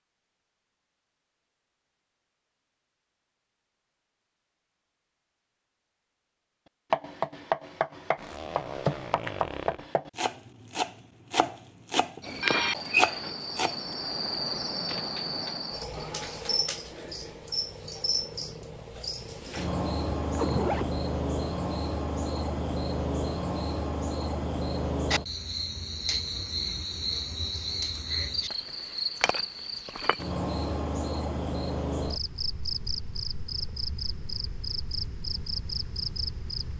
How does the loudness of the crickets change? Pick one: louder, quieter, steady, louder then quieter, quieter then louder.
steady.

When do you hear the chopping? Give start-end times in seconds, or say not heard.
6.9-13.8.